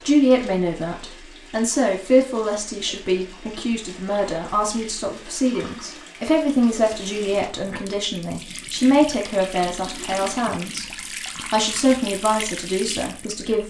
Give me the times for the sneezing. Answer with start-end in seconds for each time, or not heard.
not heard.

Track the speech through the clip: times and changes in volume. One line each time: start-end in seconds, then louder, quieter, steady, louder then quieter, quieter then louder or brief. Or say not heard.
0.0-13.6 steady.